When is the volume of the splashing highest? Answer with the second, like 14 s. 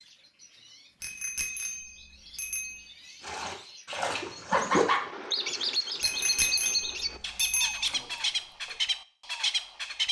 5 s.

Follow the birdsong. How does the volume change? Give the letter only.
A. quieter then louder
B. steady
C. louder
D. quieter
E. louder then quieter
C.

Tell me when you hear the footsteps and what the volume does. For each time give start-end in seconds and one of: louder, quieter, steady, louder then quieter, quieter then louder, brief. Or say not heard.
not heard.